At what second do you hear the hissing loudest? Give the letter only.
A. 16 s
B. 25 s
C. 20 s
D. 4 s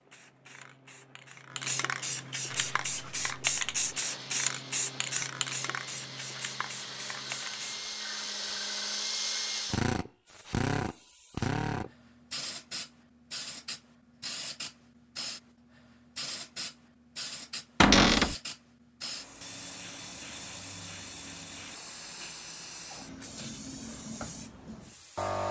D.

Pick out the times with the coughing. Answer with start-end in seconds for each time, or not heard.
not heard.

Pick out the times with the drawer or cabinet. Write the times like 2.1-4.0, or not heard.
17.8-18.4.